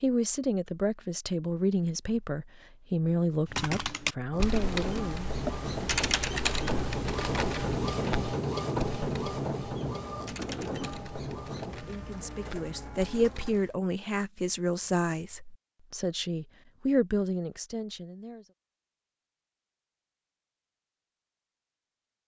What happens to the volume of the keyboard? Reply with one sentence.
The loudness of the keyboard goes down.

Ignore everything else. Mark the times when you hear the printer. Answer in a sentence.
You can hear the printer from 4.3 to 13.6 s.